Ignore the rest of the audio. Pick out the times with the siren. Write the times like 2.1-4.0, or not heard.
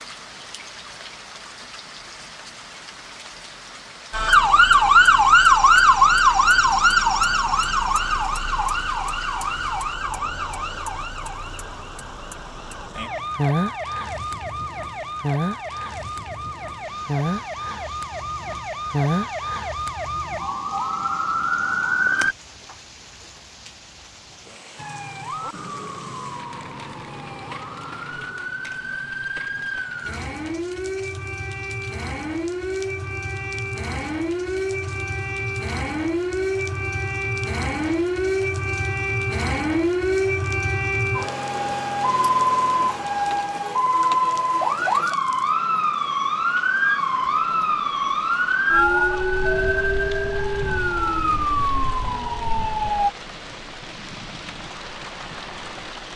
4.1-22.4, 24.8-53.1.